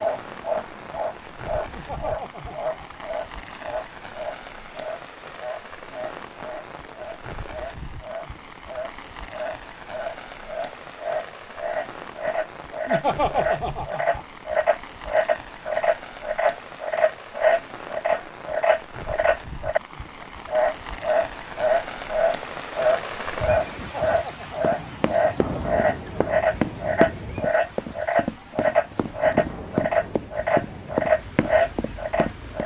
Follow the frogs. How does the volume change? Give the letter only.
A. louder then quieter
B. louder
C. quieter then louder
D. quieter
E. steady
B.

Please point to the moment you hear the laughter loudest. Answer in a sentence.
The volume of the laughter peaks at 13 seconds.